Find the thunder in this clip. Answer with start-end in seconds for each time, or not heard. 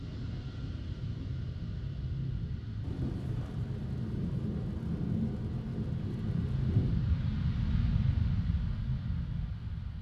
2.8-7.1.